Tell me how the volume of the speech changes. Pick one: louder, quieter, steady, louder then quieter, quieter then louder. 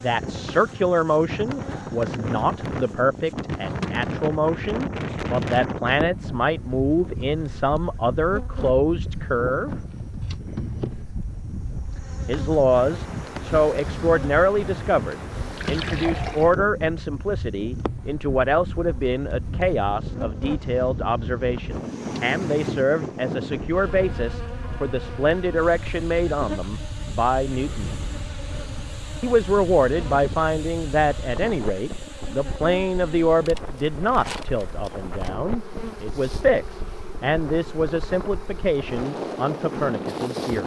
steady.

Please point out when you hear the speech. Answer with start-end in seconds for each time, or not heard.
0.0-9.8, 12.2-27.9, 29.2-40.6.